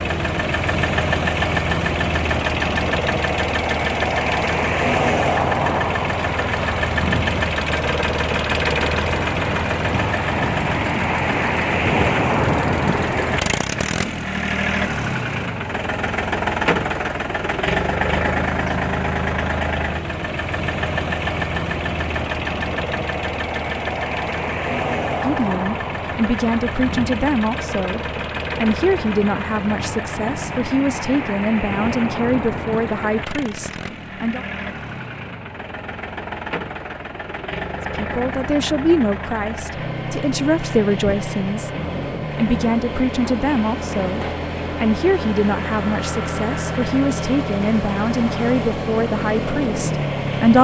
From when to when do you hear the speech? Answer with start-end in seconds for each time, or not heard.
25.1-34.5, 37.9-41.7, 42.4-50.5.